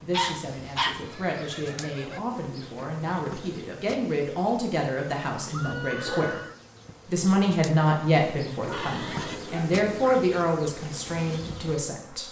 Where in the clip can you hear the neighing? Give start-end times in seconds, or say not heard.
0.9-2.2, 5.5-6.6, 8.7-9.4.